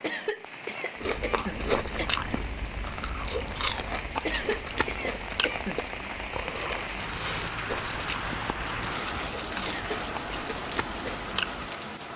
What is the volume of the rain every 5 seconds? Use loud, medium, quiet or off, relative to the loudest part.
medium, loud, loud.